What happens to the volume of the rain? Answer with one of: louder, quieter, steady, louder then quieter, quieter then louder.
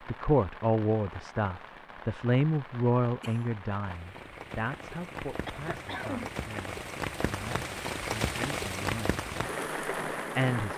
louder.